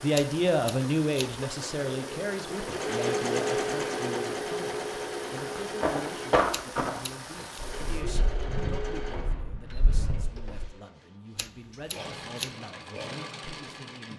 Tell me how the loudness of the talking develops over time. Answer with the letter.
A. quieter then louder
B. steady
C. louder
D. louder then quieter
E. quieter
E.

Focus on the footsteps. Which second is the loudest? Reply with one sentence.
The volume of the footsteps peaks at 6 seconds.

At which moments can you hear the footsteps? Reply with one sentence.
You can hear the footsteps from 5.3 to 10.6 s.